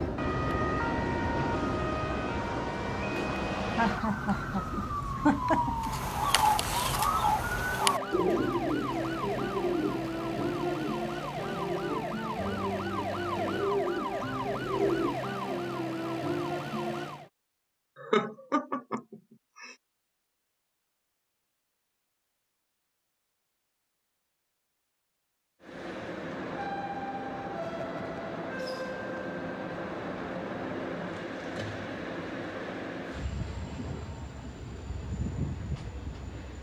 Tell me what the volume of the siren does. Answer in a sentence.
The volume of the siren stays about the same.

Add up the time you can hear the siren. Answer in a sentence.
You can hear the siren for 17 seconds altogether.